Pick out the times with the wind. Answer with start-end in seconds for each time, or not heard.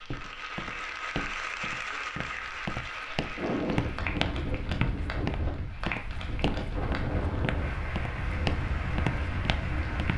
3.4-10.1.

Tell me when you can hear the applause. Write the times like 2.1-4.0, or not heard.
0.0-10.1.